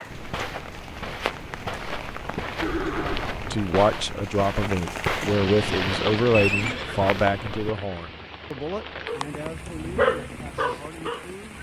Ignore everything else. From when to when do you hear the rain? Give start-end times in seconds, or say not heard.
0.0-11.5.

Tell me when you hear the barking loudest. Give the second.
10 s.